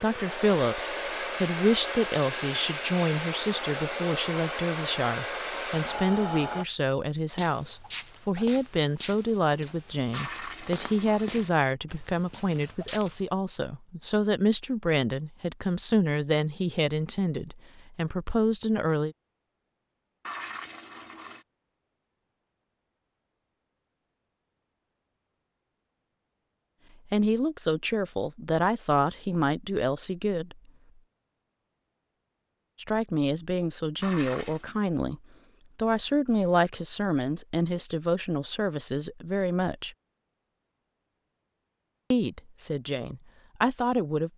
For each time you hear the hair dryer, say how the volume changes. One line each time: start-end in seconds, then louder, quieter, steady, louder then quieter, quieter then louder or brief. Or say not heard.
0.0-6.7 steady.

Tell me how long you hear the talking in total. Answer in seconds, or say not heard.
32 s.